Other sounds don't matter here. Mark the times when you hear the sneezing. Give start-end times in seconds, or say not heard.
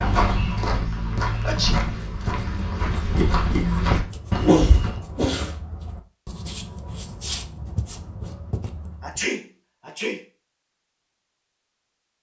1.3-1.8, 4.3-5.5, 9.0-10.2.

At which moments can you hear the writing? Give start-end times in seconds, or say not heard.
1.8-9.2.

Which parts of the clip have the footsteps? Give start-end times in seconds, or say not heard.
0.0-5.0.